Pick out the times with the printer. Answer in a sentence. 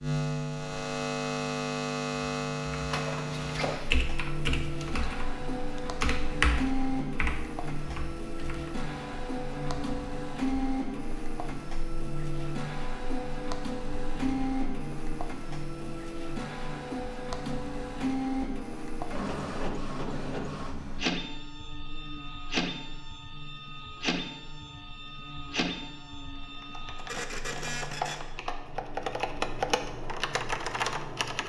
You can hear the printer from 2.9 to 28.2 s.